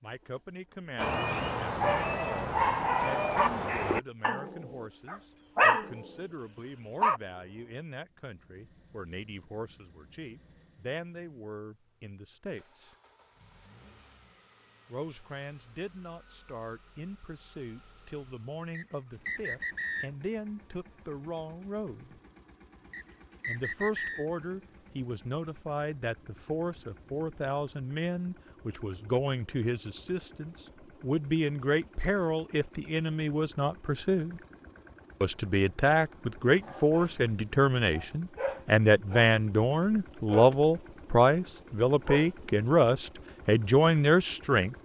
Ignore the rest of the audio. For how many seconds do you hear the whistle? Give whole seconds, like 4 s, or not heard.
3 s.